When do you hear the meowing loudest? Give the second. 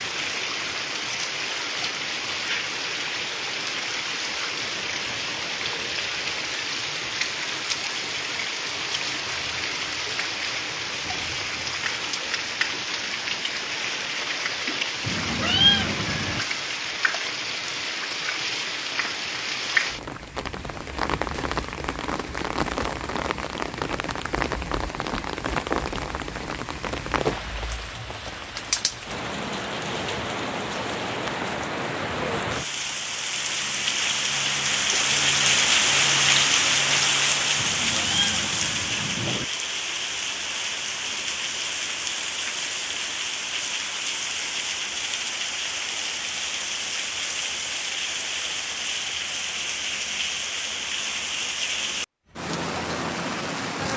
16 s.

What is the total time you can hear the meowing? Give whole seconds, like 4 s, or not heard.
3 s.